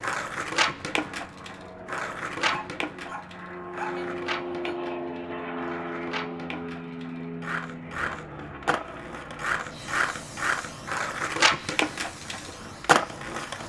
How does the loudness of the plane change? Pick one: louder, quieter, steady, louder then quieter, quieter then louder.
louder then quieter.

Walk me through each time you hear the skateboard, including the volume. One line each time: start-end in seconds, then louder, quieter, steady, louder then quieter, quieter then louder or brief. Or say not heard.
0.0-13.6 quieter then louder.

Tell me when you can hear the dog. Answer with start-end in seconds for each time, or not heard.
2.5-4.8.